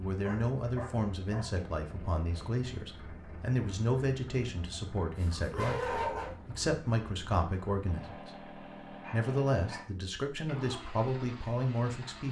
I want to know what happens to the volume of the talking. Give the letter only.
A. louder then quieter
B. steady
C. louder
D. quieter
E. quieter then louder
B.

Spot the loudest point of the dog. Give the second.
6 s.